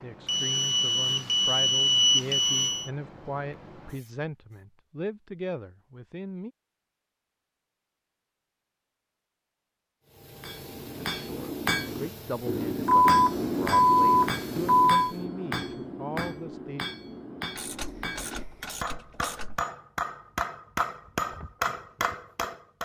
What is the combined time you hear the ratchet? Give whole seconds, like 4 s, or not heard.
2 s.